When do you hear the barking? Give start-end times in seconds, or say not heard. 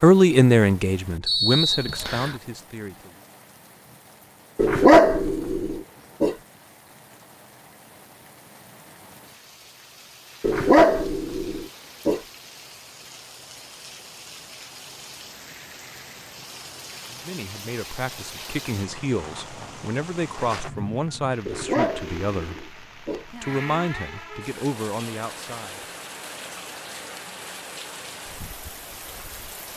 4.5-6.3, 10.4-12.2, 21.4-23.2.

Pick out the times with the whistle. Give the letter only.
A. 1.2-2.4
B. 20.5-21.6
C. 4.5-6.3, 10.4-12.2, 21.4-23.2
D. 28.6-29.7
A.